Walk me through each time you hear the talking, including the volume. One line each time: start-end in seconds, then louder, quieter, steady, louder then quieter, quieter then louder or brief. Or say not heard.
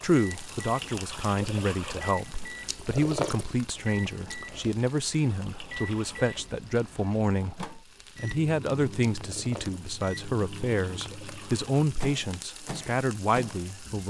0.0-14.0 steady.